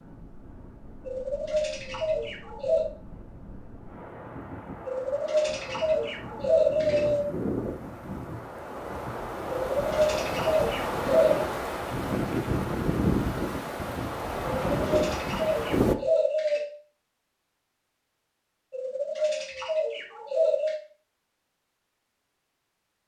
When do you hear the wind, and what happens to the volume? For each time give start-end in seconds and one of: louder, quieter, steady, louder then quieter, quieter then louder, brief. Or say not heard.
0.0-15.9 louder.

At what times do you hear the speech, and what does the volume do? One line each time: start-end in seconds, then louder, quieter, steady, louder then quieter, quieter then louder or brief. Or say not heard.
not heard.